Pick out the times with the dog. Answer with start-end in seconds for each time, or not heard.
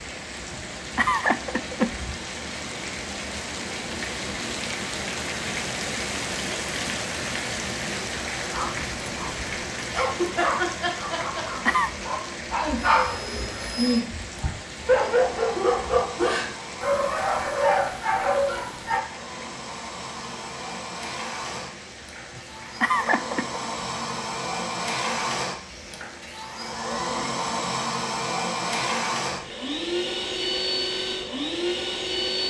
8.5-19.0.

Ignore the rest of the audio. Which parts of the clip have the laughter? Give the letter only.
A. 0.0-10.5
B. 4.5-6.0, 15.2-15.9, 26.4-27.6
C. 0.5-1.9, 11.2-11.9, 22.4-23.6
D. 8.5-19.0
C.